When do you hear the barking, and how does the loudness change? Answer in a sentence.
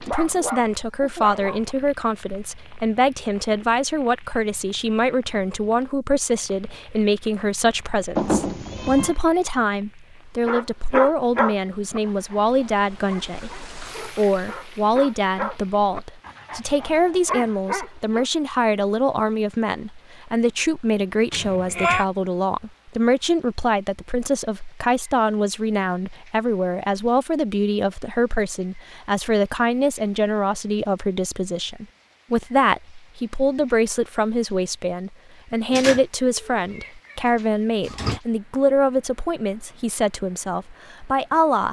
The barking can be heard briefly from 0.0 to 1.8 s; and from 10.4 to 18.2 s, getting quieter then louder.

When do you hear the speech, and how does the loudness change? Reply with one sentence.
You can hear the speech from 0.0 to 41.6 s, at a steady volume.